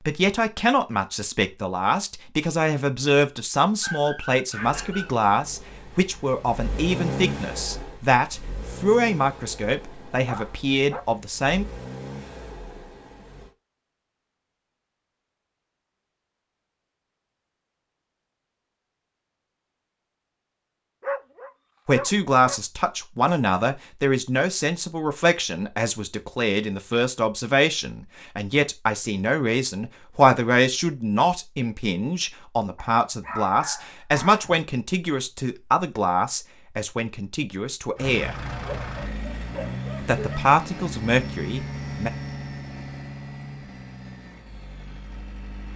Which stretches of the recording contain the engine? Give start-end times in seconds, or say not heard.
4.5-13.6, 38.0-45.7.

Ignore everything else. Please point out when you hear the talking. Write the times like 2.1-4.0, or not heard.
0.1-11.7, 21.9-38.4, 40.0-42.1.